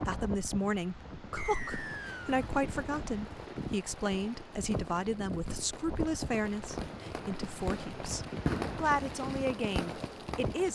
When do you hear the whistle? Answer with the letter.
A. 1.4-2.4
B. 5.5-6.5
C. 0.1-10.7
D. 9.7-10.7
A.